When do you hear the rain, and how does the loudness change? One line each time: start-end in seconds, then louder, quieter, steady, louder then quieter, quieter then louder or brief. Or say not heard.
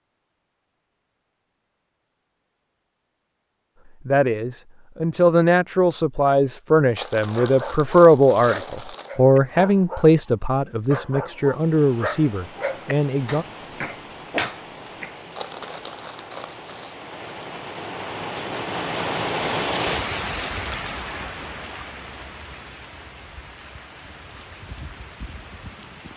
11.4-26.1 louder then quieter.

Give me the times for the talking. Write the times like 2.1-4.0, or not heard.
4.0-13.4.